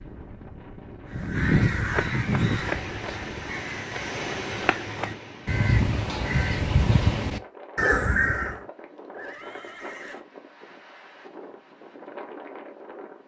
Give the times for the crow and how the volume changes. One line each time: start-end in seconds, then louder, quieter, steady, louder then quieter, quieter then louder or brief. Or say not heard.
1.1-8.6 quieter then louder.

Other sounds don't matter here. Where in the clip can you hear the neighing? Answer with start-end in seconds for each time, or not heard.
9.1-10.2.